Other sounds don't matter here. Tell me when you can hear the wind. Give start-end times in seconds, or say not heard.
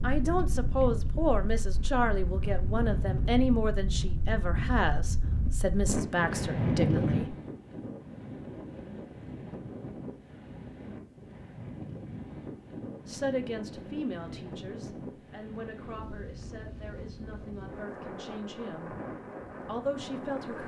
0.0-20.6.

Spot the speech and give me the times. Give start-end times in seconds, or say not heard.
0.0-7.3, 13.1-18.9, 19.6-20.6.